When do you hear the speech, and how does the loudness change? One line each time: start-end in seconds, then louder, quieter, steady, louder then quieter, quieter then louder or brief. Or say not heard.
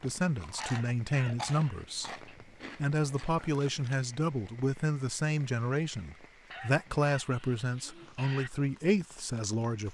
0.0-9.9 steady.